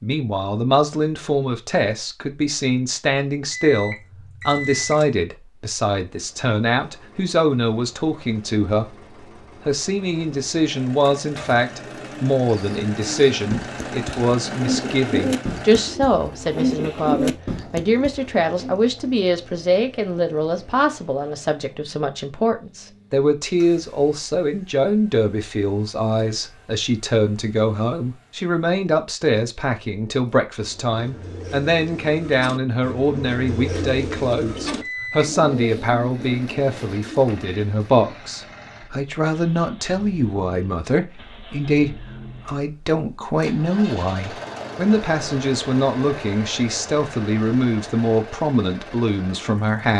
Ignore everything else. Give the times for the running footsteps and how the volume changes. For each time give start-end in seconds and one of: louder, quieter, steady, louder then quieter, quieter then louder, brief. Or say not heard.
not heard.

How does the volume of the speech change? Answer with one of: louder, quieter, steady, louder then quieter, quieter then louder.
steady.